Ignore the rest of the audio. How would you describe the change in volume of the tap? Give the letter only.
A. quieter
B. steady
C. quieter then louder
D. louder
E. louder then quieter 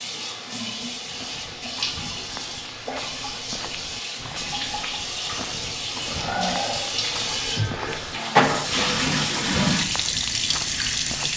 D.